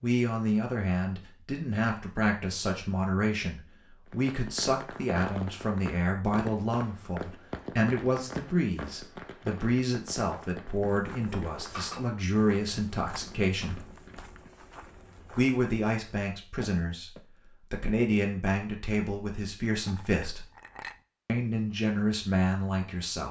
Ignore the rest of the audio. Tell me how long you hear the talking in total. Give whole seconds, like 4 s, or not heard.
21 s.